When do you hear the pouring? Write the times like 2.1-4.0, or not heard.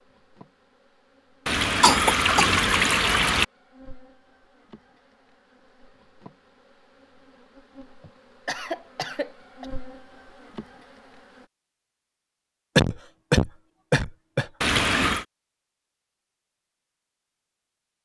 1.4-3.5, 14.6-15.2.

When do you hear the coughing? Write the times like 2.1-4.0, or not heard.
1.8-2.6, 8.0-9.7, 12.8-14.8.